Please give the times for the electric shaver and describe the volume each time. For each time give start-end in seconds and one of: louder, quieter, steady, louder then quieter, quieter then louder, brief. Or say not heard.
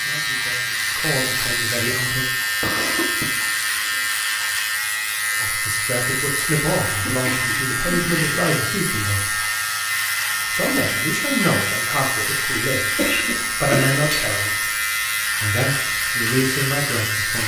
0.0-17.4 steady.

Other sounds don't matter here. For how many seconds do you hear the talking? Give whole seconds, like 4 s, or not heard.
12 s.